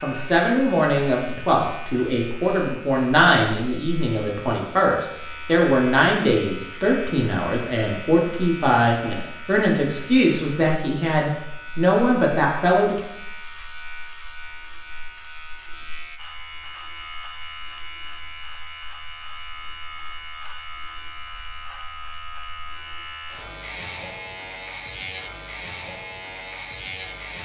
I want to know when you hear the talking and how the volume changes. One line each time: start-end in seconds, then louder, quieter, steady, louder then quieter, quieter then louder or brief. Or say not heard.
0.0-13.0 steady.